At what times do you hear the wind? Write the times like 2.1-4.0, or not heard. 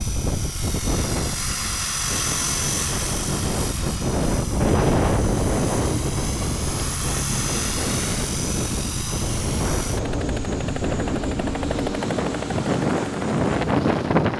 0.0-14.3.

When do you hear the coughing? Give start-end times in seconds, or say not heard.
not heard.